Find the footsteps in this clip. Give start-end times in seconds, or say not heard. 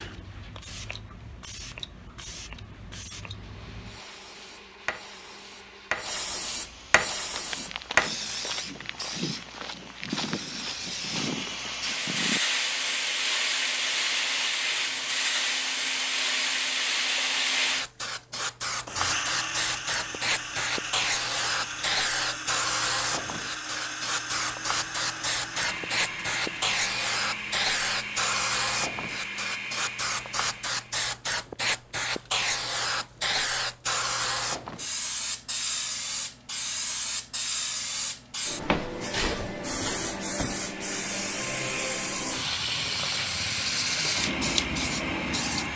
7.0-12.4.